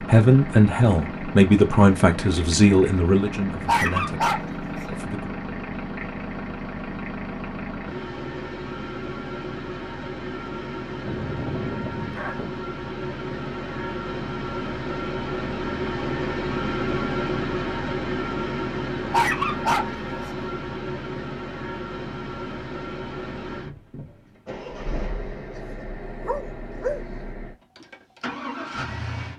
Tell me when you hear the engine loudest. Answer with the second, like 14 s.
17 s.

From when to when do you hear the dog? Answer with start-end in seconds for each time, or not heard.
3.6-5.0, 11.1-12.6, 19.1-20.4, 25.6-27.0.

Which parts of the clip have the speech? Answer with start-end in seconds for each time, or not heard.
0.0-5.3.